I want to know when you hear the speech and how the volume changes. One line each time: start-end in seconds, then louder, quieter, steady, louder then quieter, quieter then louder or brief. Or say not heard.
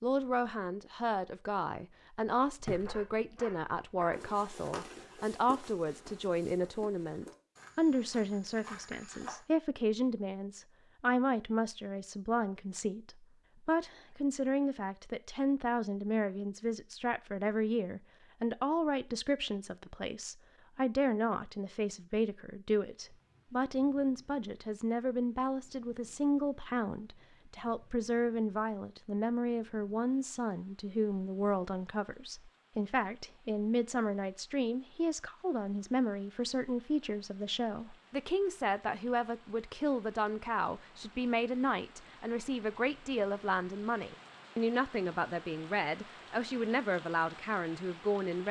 0.0-48.4 steady.